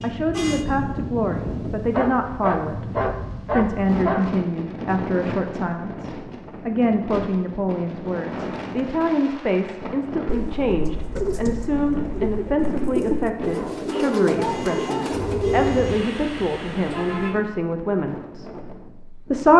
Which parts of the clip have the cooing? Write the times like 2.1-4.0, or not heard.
10.2-15.8.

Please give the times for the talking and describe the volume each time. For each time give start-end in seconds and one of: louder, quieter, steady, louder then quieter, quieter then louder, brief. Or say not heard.
0.0-19.5 steady.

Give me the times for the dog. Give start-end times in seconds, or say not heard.
1.9-4.3, 13.5-15.2.